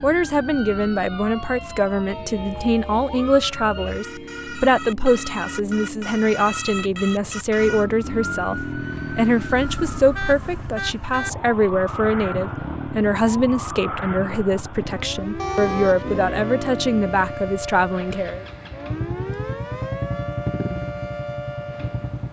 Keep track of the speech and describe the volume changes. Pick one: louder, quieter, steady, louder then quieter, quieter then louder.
steady.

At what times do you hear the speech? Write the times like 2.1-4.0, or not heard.
0.0-18.4.